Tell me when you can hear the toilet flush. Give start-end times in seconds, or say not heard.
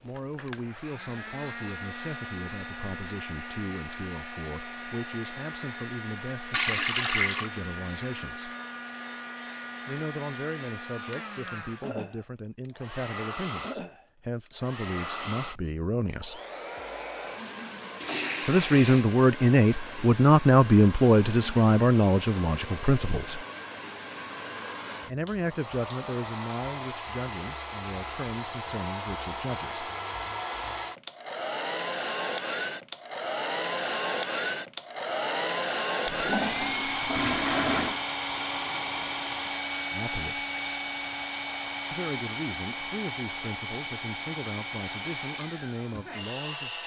6.5-7.5, 18.0-19.1, 36.0-38.0.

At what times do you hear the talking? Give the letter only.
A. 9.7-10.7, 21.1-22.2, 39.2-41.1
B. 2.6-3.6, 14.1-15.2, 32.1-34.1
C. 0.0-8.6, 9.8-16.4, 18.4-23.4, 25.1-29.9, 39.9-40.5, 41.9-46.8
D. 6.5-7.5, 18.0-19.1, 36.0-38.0
C.